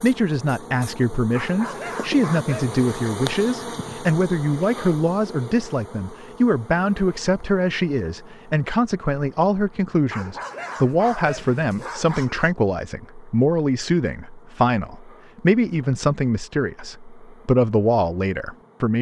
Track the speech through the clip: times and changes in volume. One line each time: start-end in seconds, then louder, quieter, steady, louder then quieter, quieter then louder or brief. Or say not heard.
0.0-18.9 steady.